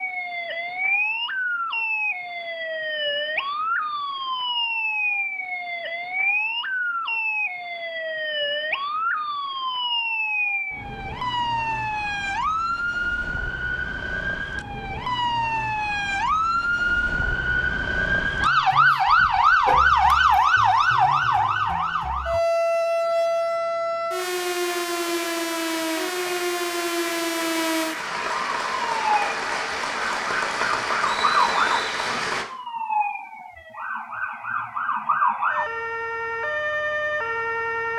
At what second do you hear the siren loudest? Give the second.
20 s.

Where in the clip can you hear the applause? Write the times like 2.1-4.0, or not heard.
24.1-32.5.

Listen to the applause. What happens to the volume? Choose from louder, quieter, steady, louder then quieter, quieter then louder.
louder.